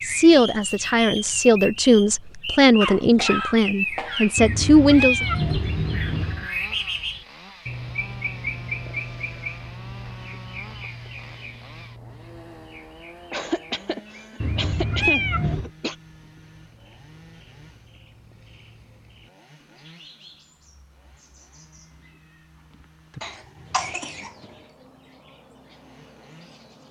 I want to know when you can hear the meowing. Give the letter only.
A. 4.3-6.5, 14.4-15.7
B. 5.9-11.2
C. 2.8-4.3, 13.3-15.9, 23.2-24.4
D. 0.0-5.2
A.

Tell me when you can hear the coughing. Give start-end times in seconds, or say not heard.
2.8-4.3, 13.3-15.9, 23.2-24.4.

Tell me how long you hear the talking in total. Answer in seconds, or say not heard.
5 s.